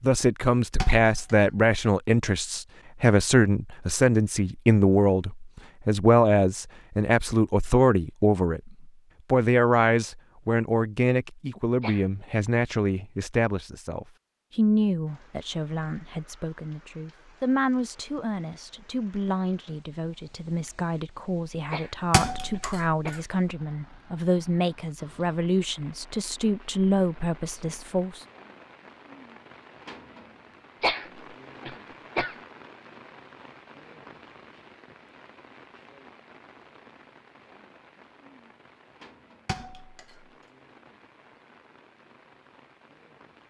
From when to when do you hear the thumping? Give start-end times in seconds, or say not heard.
0.8-1.4, 22.1-22.9, 39.5-40.2.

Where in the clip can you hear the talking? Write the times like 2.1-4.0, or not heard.
0.0-28.2.